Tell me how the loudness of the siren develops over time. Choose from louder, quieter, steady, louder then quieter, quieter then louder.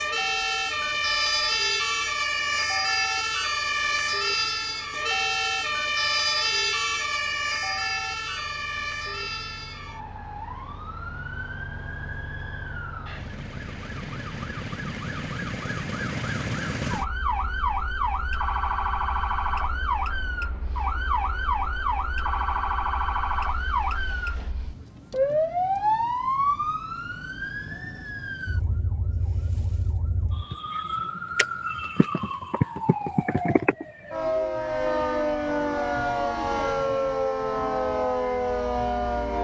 quieter then louder.